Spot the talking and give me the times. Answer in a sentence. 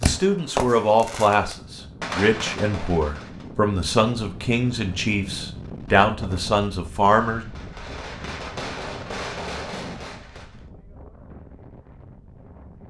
The talking can be heard from 0.0 to 7.5 s.